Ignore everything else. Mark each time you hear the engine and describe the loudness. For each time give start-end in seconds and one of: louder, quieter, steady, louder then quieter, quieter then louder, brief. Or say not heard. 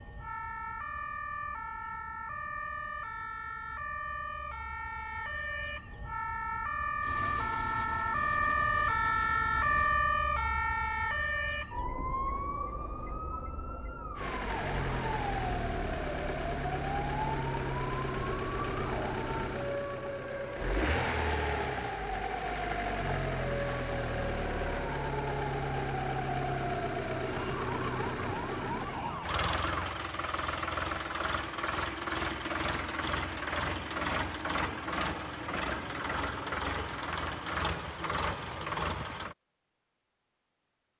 7.0-9.9 brief
14.2-39.4 steady.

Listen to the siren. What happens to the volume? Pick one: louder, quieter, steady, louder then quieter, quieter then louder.
louder then quieter.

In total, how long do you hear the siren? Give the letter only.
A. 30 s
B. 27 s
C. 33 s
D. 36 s
A.